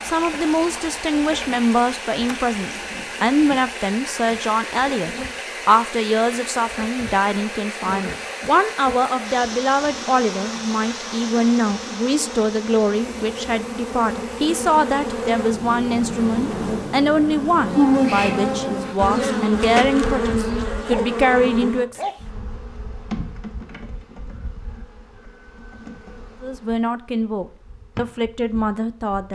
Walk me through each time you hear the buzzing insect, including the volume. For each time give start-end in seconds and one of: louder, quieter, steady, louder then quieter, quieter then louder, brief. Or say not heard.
0.0-29.3 louder then quieter.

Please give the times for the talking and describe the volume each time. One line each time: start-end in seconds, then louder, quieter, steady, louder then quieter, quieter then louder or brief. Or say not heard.
0.0-22.0 steady
26.4-29.3 brief.